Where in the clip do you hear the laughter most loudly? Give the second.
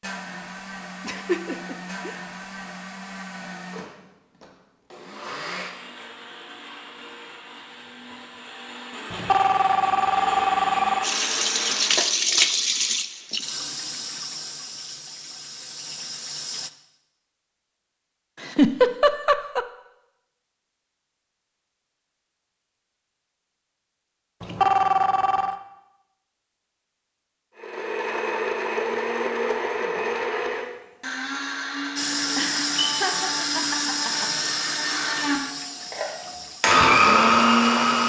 19 s.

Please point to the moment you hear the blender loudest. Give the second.
37 s.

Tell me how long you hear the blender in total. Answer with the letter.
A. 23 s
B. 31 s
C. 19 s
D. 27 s
A.